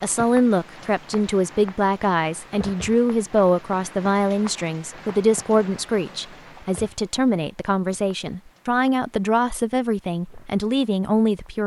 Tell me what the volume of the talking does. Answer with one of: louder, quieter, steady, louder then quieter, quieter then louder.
steady.